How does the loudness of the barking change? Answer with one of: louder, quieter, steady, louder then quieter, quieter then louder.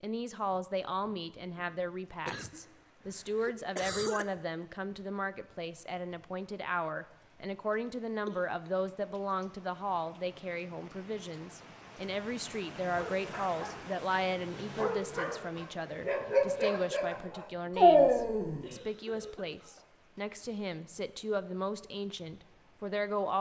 louder.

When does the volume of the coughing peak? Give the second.
4 s.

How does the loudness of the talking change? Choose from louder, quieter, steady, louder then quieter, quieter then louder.
steady.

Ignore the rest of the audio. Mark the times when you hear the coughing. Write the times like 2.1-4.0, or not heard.
2.2-4.2, 8.2-8.9, 18.6-19.9.